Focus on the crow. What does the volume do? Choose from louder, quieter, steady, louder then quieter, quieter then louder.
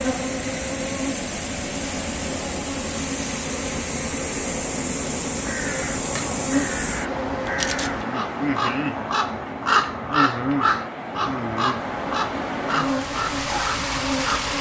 louder then quieter.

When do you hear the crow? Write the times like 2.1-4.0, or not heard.
5.3-14.5.